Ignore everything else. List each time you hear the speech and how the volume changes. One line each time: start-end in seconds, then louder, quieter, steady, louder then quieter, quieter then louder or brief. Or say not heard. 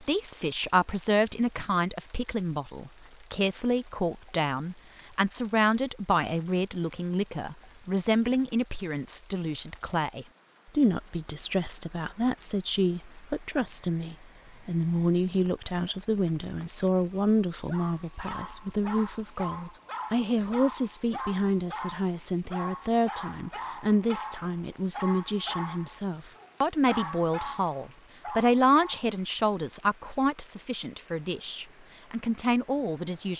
0.0-33.3 steady.